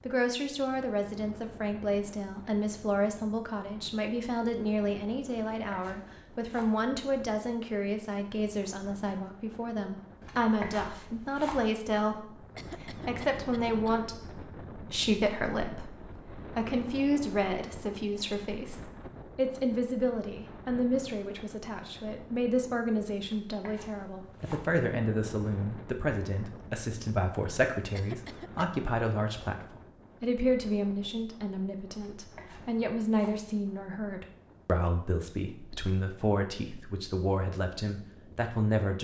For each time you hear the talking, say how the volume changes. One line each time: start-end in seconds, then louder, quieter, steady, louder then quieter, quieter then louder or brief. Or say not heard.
0.1-38.9 steady.